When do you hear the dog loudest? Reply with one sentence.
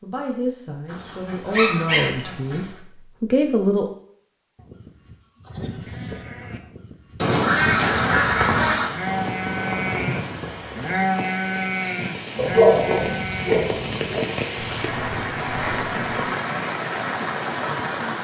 The loudest moment of the dog is at 13 seconds.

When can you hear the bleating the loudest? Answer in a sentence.
The loudest moment of the bleating is at 11 seconds.